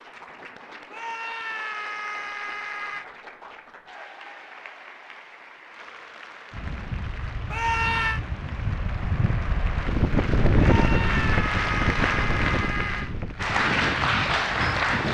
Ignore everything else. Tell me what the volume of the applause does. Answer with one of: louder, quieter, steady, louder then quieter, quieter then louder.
louder.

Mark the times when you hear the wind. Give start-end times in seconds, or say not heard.
6.5-15.0.